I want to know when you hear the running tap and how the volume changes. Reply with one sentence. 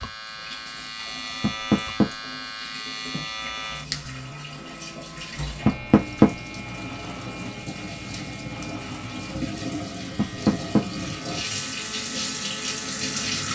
You can hear the running tap from 0.0 to 13.5 s, getting louder.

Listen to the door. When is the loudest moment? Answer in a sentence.
The volume of the door peaks at 6 seconds.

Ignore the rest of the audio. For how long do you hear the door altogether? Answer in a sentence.
The door can be heard for 2 seconds in total.